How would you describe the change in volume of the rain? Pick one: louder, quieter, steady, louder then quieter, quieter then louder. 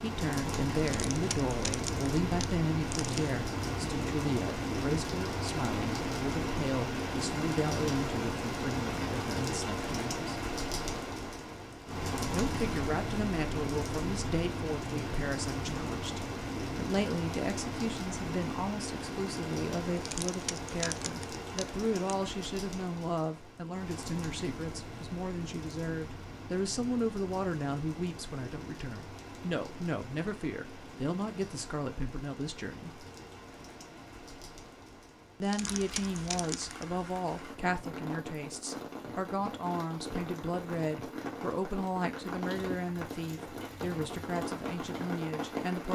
quieter then louder.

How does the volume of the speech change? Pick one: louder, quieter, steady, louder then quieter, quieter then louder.
steady.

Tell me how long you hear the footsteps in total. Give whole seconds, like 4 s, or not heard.
not heard.